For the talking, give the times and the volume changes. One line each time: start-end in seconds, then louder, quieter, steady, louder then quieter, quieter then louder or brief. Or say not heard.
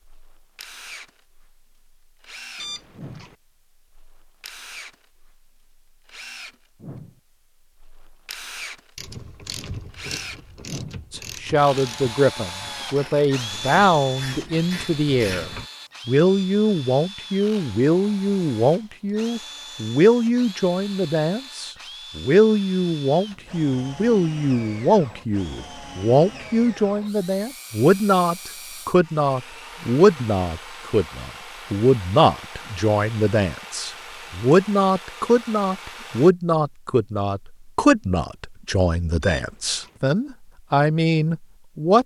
11.1-42.0 steady.